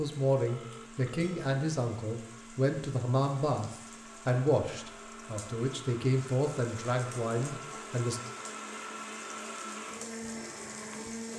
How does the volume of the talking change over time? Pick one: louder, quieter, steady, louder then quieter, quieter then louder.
steady.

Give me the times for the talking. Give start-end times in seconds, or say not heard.
0.0-8.2.